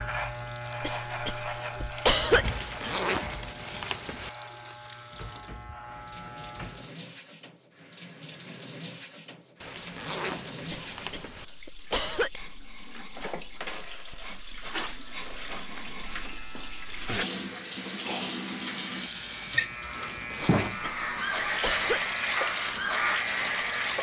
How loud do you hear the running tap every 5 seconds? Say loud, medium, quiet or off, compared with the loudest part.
quiet, quiet, medium, loud, loud.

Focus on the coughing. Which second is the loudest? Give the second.
2 s.